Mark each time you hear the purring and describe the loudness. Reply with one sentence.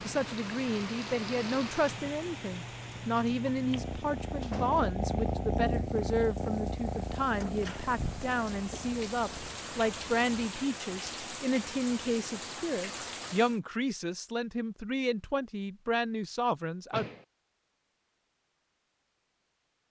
The purring can be heard from 0.0 to 10.3 s, getting louder then quieter.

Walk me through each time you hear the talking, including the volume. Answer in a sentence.
The talking can be heard from 0.0 to 17.1 s, at a steady volume.